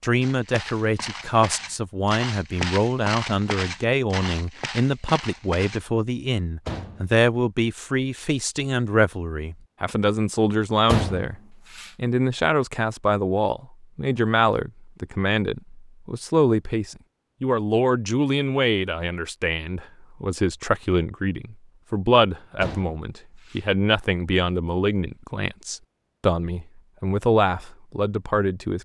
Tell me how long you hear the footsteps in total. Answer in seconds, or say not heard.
6 s.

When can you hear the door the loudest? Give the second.
11 s.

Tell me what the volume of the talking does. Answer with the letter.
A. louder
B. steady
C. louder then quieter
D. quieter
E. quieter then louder
B.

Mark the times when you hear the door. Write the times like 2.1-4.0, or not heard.
6.7-7.1, 10.8-11.9, 22.6-23.6.